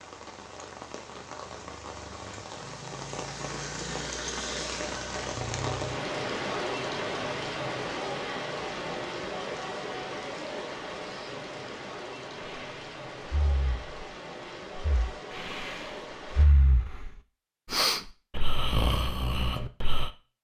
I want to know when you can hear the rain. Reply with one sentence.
You can hear the rain from 0.0 to 16.4 s.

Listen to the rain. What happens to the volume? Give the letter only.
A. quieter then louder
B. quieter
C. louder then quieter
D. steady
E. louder
C.